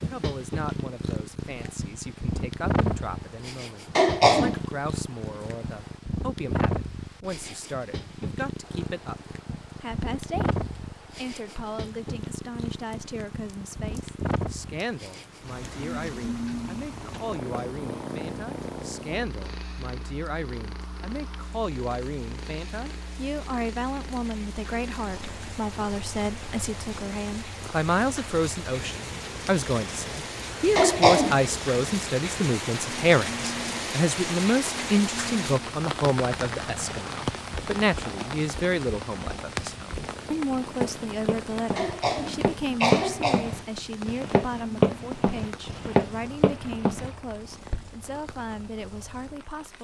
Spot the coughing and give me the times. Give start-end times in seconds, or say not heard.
4.0-4.5, 30.8-31.4, 41.8-43.5.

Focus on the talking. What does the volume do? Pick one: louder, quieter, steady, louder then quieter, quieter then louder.
louder then quieter.